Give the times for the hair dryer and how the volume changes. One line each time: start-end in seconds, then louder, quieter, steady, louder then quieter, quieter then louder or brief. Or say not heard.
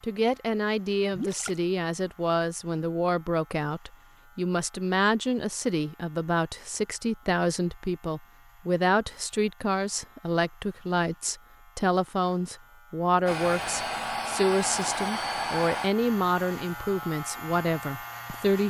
13.2-18.6 quieter.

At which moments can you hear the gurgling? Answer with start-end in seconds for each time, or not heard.
1.1-1.6.